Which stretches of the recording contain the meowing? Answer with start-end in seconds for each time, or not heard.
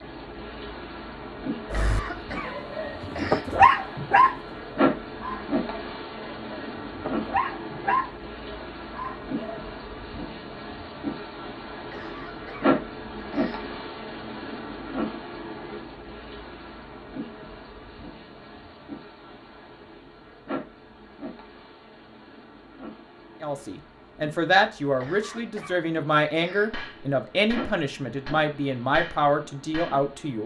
not heard.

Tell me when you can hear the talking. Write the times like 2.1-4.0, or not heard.
23.4-30.4.